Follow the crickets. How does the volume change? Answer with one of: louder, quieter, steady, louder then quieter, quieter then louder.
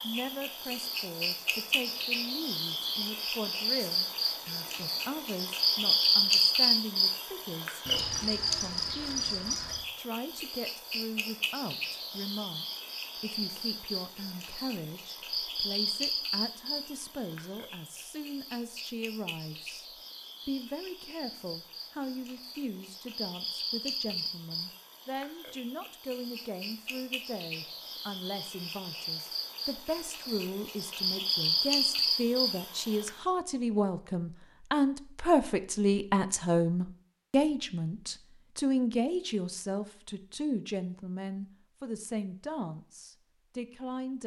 quieter then louder.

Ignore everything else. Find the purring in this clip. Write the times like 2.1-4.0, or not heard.
not heard.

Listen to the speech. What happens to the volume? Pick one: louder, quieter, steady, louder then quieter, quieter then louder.
louder.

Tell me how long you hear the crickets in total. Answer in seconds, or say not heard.
33 s.